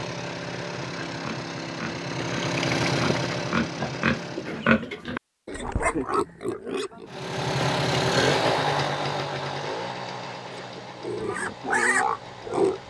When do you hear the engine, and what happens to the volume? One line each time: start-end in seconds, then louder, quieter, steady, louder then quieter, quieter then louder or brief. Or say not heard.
0.0-4.7 louder then quieter
7.0-12.8 quieter.